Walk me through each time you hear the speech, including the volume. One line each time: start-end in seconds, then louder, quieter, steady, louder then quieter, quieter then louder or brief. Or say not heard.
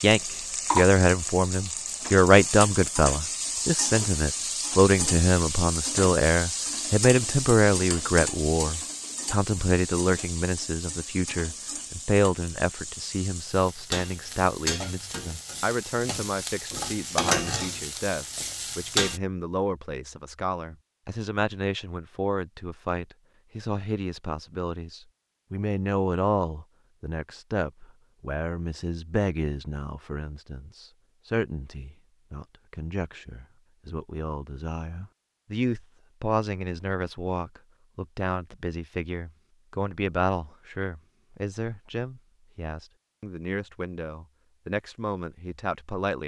0.0-46.2 quieter.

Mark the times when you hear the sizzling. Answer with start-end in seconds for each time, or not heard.
0.0-19.2.